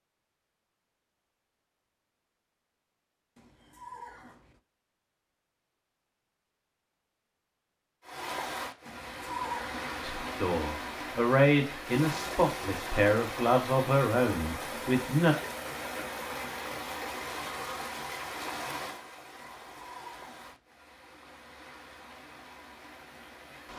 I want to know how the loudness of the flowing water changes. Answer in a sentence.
The loudness of the flowing water goes down.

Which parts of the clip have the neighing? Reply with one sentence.
The neighing can be heard from 3.4 to 4.6 s, from 8.8 to 10.4 s and from 19.4 to 20.6 s.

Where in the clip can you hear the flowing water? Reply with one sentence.
You can hear the flowing water from 8.0 to 23.7 s.